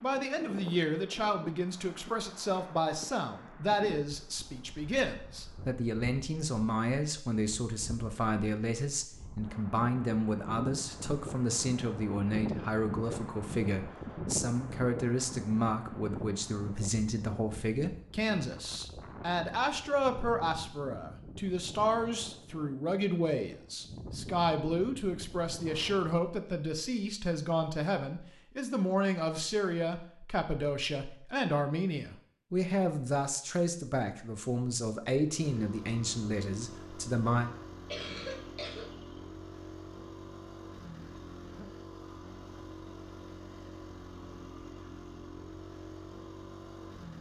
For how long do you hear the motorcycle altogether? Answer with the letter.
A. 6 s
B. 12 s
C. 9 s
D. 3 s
B.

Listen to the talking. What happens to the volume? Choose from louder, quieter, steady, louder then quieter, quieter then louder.
steady.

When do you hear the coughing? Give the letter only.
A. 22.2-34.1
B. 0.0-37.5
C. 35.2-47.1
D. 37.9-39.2
D.